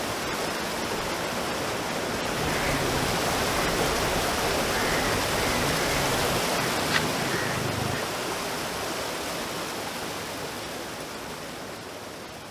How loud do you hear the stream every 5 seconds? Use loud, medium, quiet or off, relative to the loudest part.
loud, loud, medium.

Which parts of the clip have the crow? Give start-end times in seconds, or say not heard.
2.4-8.1.